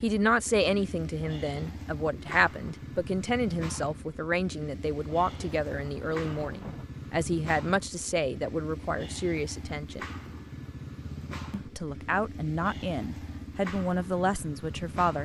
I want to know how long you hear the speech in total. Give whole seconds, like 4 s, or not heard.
14 s.